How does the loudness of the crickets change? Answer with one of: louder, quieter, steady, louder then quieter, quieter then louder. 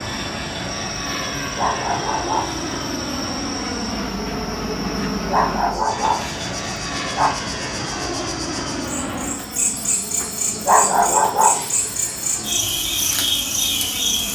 louder.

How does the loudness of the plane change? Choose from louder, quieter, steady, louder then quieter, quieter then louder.
quieter.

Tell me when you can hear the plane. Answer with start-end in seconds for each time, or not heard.
0.0-14.3.